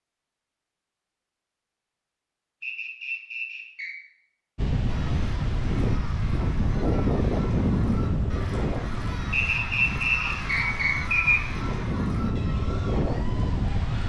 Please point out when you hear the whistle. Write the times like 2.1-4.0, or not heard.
2.6-4.0, 9.3-11.4.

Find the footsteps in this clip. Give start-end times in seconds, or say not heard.
not heard.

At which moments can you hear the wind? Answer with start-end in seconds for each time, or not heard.
4.5-14.0.